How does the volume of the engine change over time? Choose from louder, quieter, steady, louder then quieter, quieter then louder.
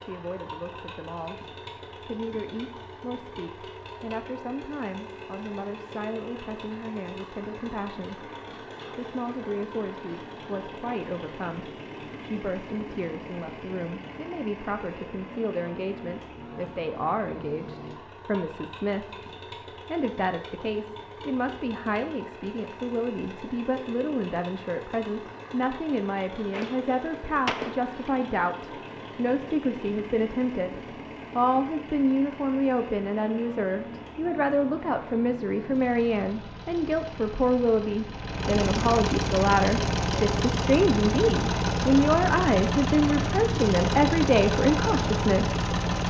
louder.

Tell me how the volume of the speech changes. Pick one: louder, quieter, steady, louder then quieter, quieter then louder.
louder.